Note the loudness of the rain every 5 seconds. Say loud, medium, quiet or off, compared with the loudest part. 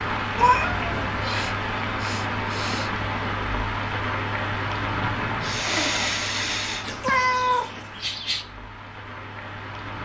loud, medium.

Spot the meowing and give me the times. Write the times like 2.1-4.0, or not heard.
0.3-1.1, 6.8-8.4.